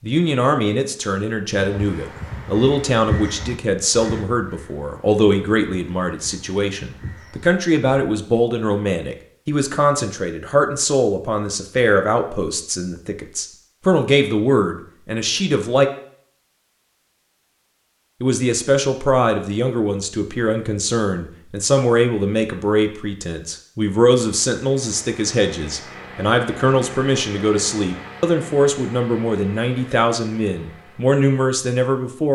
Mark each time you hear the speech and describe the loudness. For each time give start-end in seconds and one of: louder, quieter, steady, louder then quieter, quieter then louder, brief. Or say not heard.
0.0-15.9 steady
18.2-32.2 steady.